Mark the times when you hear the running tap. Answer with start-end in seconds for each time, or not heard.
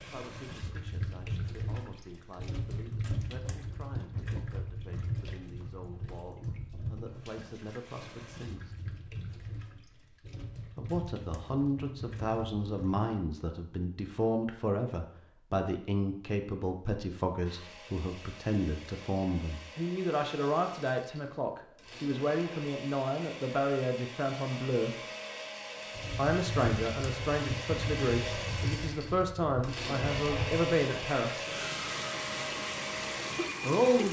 0.0-13.1, 25.9-34.0.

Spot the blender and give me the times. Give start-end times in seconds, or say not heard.
17.4-34.0.